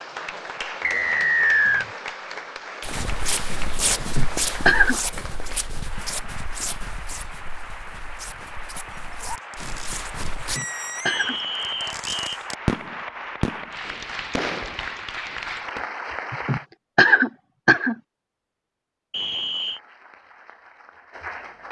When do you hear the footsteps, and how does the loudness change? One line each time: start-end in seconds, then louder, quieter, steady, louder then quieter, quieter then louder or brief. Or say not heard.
2.8-10.6 quieter then louder.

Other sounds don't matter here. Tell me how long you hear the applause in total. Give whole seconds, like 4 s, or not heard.
19 s.